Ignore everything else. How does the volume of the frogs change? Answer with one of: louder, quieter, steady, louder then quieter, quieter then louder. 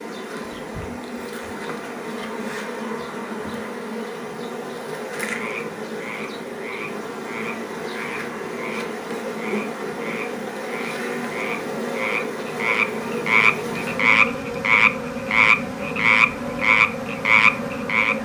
louder.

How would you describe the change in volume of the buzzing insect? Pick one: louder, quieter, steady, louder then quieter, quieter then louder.
steady.